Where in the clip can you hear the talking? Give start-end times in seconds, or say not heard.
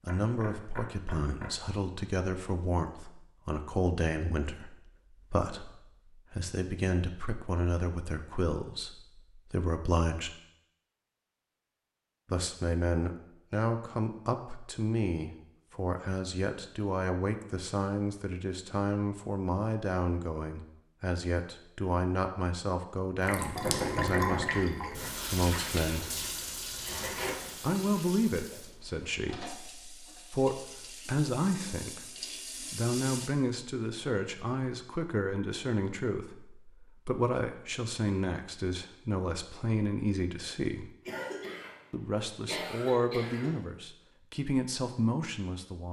0.0-10.3, 12.3-26.1, 27.6-40.9, 41.9-45.8.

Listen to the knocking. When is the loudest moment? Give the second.
24 s.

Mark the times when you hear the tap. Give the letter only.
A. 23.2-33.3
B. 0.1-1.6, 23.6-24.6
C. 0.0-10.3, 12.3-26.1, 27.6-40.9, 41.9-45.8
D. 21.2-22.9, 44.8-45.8
A.